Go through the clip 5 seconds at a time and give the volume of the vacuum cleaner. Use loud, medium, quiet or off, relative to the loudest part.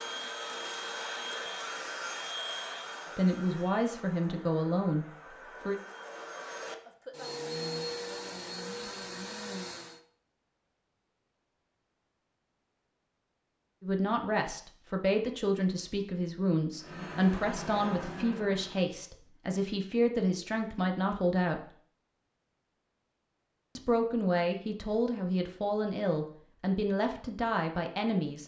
loud, loud, off, loud, off, off.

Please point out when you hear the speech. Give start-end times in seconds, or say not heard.
3.1-5.8, 13.8-21.7, 23.8-28.4.